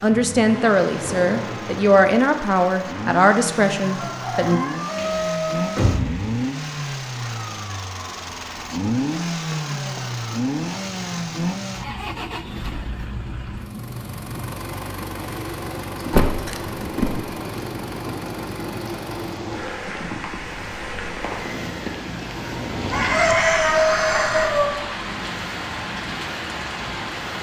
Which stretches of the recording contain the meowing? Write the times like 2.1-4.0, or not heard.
not heard.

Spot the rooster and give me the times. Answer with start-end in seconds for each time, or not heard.
3.8-5.8, 22.9-24.7.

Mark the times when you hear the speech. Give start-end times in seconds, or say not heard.
0.0-4.6.